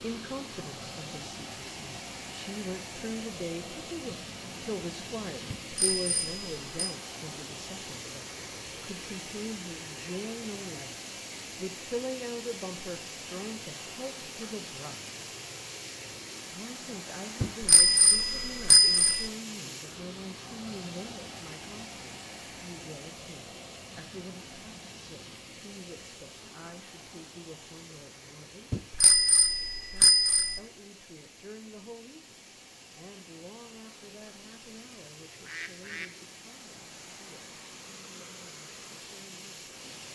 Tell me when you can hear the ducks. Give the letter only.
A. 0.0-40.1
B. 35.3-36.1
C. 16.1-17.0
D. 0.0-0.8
B.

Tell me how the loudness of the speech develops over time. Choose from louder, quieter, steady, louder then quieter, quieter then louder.
quieter.